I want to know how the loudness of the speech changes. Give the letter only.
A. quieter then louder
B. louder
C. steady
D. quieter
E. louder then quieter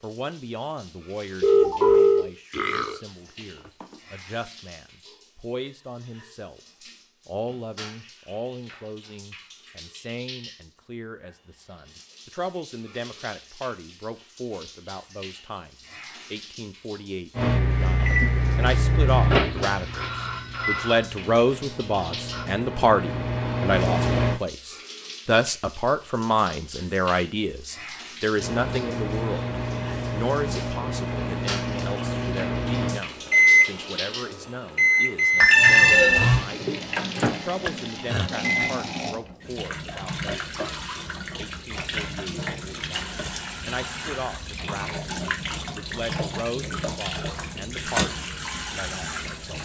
E.